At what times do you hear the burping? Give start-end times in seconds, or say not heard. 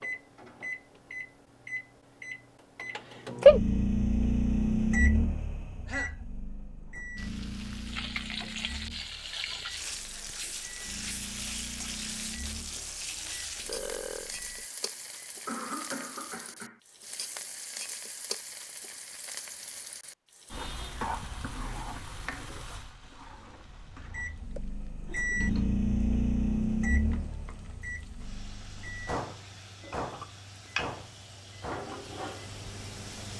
13.7-14.3.